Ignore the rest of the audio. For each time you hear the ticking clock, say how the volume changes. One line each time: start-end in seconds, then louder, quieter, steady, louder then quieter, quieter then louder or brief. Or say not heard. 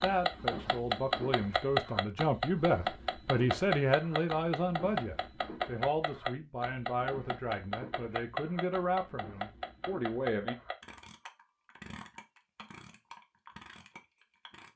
0.0-14.7 quieter.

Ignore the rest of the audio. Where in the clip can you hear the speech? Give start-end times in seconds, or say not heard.
0.0-10.6.